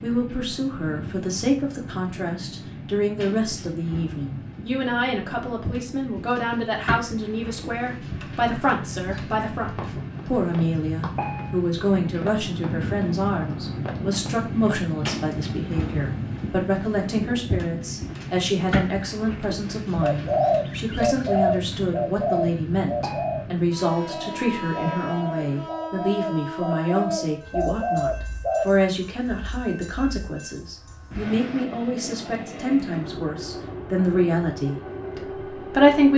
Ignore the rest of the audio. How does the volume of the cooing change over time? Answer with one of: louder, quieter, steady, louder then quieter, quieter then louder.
quieter then louder.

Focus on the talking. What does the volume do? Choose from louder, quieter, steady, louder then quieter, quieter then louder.
steady.